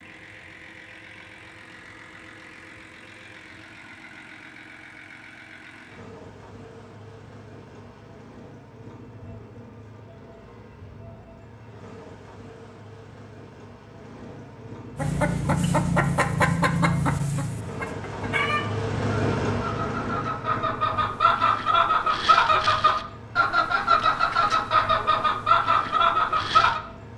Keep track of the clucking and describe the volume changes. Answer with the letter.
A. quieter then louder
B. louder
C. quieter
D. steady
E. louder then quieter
A.